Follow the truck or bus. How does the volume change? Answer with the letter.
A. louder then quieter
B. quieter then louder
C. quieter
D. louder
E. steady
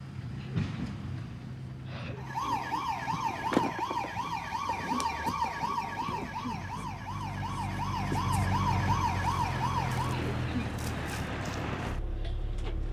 B.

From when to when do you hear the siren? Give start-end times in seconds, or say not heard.
2.1-10.2.